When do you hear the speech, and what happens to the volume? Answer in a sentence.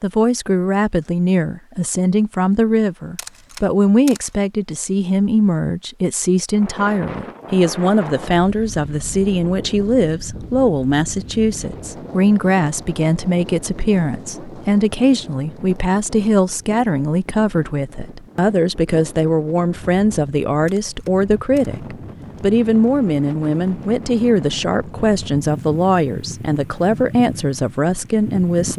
The speech can be heard from 0.0 to 28.7 s, at a steady volume.